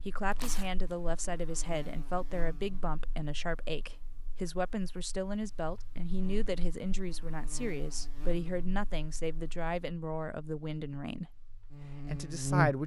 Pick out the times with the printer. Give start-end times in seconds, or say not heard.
not heard.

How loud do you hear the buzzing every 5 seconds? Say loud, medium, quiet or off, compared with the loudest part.
quiet, quiet, loud.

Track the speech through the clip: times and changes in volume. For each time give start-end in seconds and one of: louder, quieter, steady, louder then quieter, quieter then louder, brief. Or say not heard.
0.0-12.8 steady.